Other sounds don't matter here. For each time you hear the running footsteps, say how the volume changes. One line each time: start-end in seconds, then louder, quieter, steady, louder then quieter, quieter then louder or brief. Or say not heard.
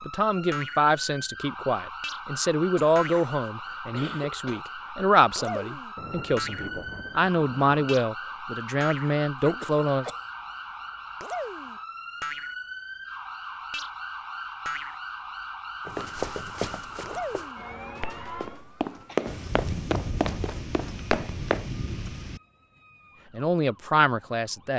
15.8-21.7 quieter then louder.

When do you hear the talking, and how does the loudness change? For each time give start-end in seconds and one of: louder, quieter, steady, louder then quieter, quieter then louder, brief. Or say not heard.
0.0-10.1 steady
23.3-24.7 brief.